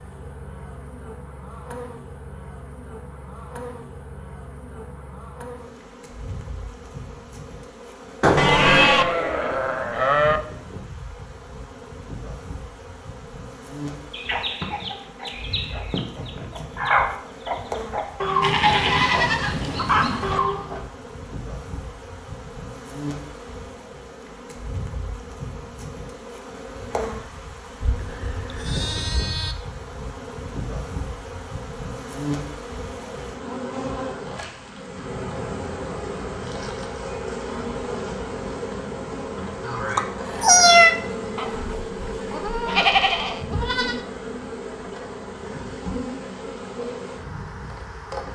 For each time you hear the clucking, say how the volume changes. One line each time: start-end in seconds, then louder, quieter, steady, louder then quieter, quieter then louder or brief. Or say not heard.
14.1-20.8 louder then quieter.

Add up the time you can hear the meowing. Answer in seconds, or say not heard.
2 s.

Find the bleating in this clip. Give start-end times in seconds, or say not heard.
8.3-10.4, 18.4-20.4, 27.8-29.6, 41.4-44.0.